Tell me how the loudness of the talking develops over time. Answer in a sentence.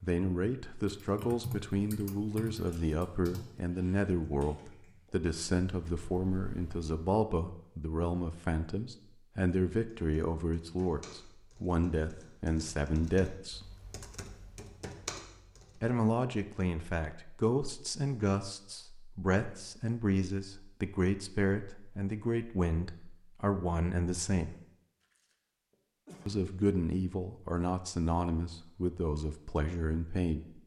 The loudness of the talking stays about the same.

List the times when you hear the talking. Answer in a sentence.
You can hear the talking from 0.0 to 13.7 s, from 15.8 to 24.6 s and from 26.2 to 30.6 s.